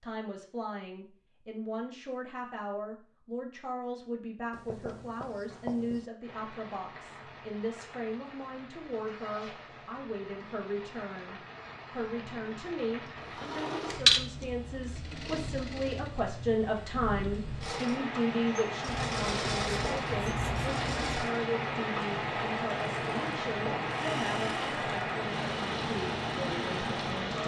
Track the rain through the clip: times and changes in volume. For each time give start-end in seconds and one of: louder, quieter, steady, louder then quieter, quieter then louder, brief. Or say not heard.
6.2-27.4 louder.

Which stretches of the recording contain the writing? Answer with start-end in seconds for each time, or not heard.
4.5-6.0, 18.9-21.2.